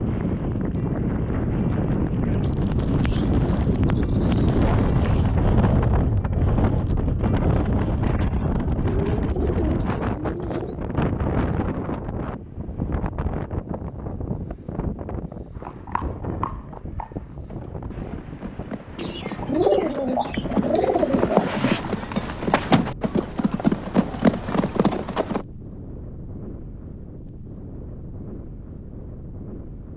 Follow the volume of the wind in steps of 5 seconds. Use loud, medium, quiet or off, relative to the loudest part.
loud, loud, medium, quiet, quiet, quiet.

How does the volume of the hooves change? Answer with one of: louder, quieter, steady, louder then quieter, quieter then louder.
louder.